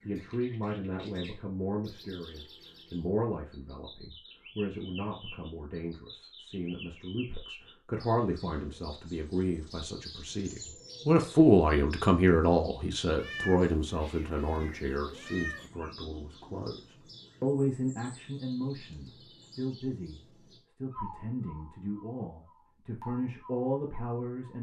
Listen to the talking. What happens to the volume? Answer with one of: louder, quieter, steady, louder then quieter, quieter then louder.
louder then quieter.